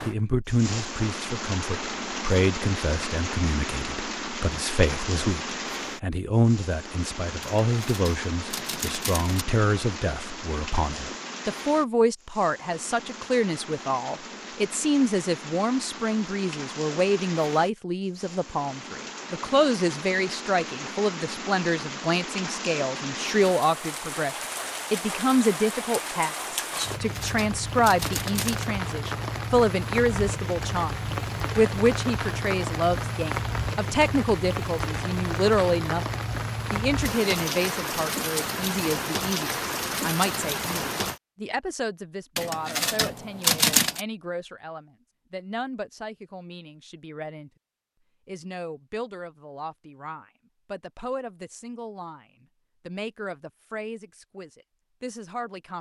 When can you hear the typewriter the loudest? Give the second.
44 s.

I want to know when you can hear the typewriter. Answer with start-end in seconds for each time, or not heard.
7.6-9.4, 26.8-28.7, 42.4-44.0.